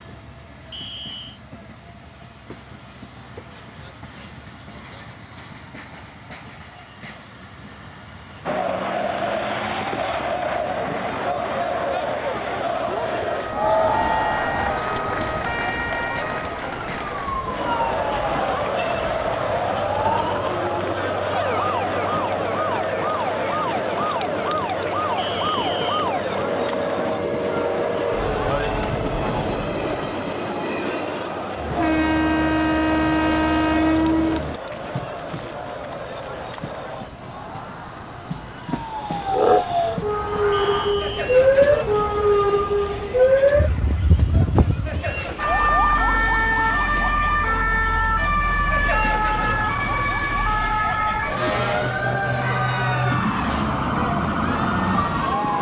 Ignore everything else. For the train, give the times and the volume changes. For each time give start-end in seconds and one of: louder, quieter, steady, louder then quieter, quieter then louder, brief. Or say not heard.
0.0-55.5 louder then quieter.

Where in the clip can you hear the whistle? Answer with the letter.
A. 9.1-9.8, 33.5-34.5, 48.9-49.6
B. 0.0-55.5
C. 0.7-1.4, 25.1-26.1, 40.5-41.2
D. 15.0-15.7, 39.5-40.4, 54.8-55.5
C.